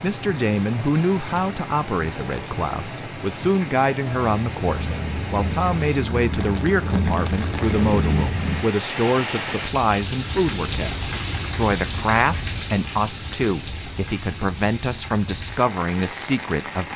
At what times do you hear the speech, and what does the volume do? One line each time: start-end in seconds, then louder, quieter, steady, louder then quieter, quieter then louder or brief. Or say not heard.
0.0-16.9 steady.